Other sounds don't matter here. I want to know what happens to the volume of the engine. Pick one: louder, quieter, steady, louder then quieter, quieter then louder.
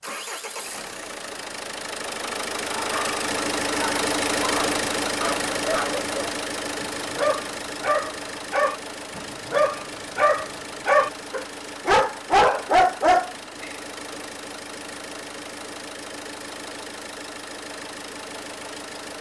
quieter.